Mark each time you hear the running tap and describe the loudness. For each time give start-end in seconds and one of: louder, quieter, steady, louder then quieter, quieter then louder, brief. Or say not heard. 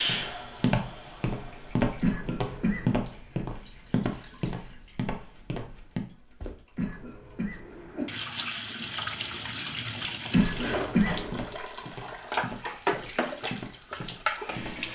0.0-14.9 quieter then louder.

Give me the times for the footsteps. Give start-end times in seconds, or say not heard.
0.0-6.5, 11.2-14.9.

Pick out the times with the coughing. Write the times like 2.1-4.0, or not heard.
2.0-3.0, 6.8-8.1, 10.3-11.4.